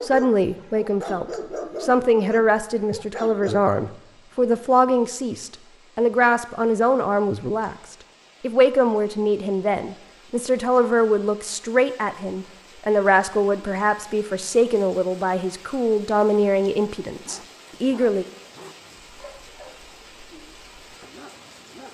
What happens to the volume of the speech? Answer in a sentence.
The loudness of the speech stays about the same.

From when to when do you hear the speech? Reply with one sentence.
You can hear the speech from 0.0 to 18.2 s.